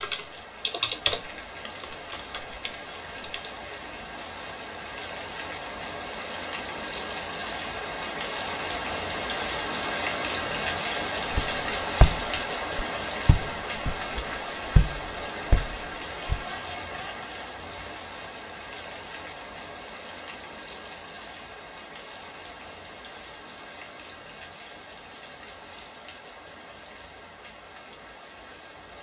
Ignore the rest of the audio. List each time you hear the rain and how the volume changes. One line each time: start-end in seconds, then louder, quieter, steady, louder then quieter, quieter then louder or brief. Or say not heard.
0.0-28.9 louder then quieter.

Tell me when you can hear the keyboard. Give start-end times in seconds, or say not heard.
0.0-3.6.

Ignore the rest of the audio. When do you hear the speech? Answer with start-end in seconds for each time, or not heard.
not heard.